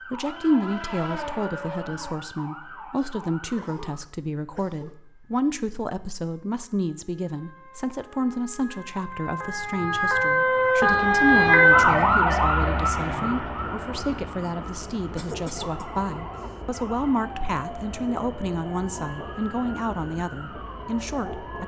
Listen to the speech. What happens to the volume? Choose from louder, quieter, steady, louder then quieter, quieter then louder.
steady.